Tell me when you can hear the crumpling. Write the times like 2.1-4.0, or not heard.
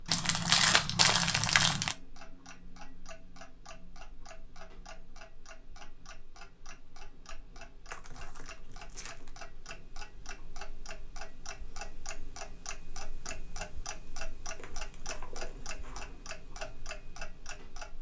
0.1-1.9, 7.9-9.3, 14.6-16.2.